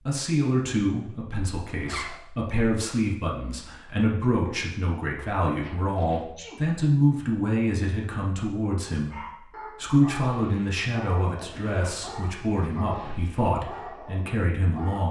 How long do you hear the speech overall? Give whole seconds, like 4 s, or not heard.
15 s.